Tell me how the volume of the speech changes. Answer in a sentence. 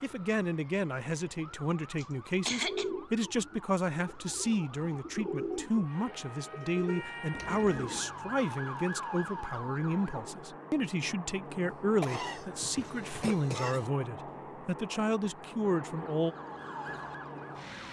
The volume of the speech stays about the same.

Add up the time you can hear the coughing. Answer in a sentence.
The coughing can be heard for 3 seconds in total.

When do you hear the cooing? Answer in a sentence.
You can hear the cooing from 2.6 to 8.1 s.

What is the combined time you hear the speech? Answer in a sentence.
You can hear the speech for 16 seconds altogether.